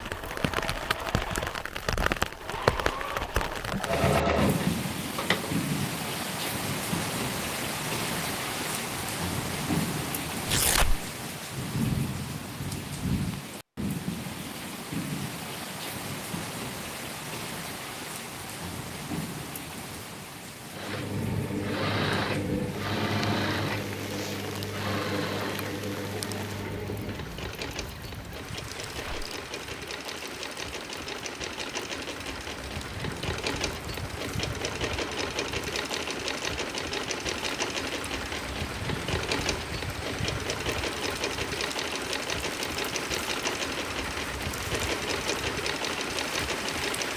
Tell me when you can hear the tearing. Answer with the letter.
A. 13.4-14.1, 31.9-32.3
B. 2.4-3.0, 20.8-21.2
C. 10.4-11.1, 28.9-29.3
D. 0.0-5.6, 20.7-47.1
C.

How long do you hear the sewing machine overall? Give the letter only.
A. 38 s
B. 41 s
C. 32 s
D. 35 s
C.